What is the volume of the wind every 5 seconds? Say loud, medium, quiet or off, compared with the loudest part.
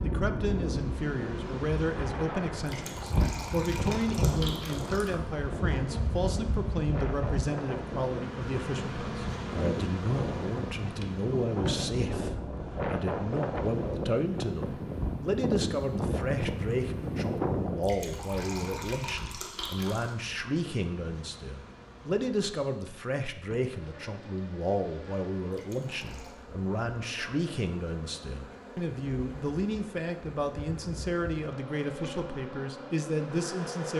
medium, medium, loud, loud, off, off, off.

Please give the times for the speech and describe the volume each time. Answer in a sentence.
You can hear the speech from 0.0 to 33.9 s, at a steady volume.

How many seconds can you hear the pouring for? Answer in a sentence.
The pouring can be heard for 6 seconds in total.